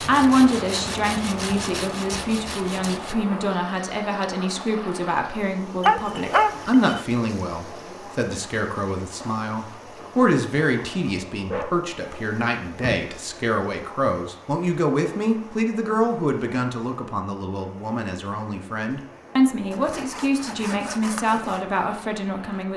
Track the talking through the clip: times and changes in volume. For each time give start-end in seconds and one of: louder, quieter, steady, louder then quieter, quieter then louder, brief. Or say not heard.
0.0-22.7 steady.